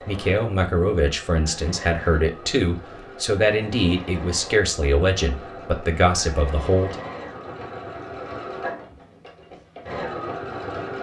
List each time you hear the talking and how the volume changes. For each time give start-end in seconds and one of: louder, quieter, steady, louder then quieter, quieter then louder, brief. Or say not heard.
0.1-7.0 steady.